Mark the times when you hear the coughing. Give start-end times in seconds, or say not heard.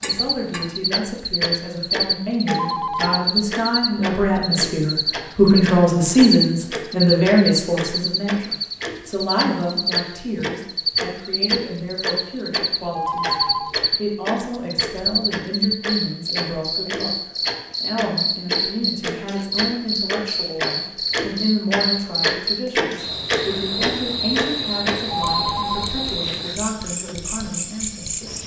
not heard.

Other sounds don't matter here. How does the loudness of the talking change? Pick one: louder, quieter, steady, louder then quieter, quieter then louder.
quieter.